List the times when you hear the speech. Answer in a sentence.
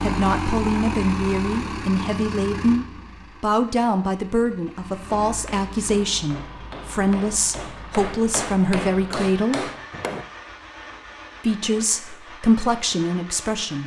You can hear the speech from 0.0 to 9.7 s and from 11.4 to 13.8 s.